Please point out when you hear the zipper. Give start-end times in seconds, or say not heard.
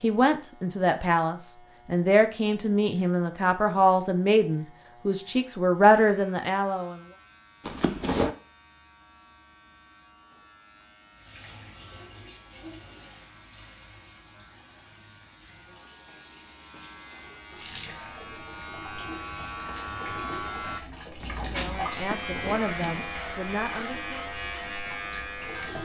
7.7-8.3, 21.9-23.1.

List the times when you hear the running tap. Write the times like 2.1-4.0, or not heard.
11.2-25.7.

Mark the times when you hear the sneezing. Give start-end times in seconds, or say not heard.
not heard.